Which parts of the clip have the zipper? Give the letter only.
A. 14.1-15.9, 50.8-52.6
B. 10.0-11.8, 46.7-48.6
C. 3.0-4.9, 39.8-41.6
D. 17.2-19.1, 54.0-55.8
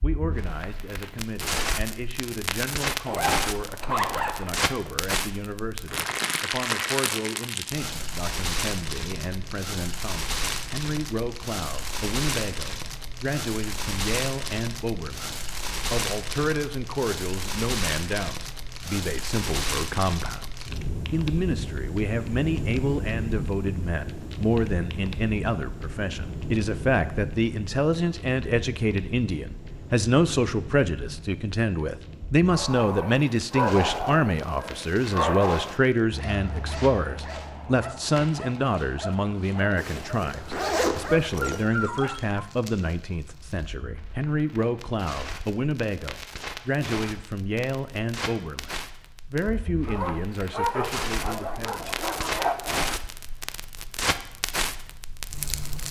C.